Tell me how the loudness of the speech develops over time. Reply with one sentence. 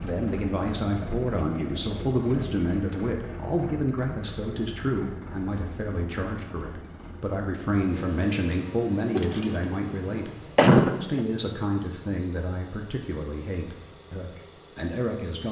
The loudness of the speech goes down.